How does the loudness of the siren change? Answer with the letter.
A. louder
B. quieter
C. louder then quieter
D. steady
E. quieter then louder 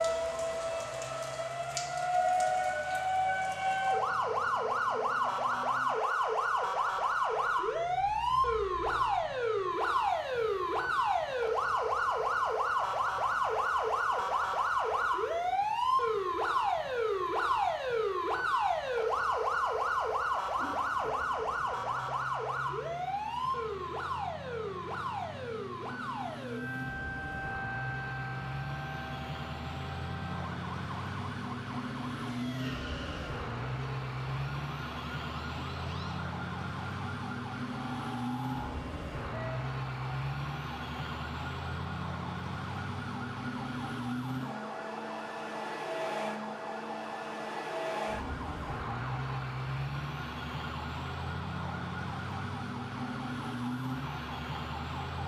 B.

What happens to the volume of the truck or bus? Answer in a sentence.
The loudness of the truck or bus goes up.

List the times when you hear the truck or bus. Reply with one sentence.
You can hear the truck or bus from 0.0 to 55.2 s.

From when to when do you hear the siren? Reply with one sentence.
You can hear the siren from 0.0 to 55.2 s.